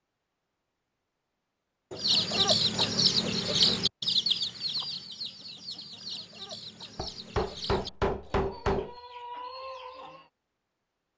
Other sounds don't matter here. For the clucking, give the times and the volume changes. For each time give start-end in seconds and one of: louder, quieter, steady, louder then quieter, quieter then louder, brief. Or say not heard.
1.9-10.3 quieter.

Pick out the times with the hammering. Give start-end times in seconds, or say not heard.
1.9-3.9, 7.0-8.9.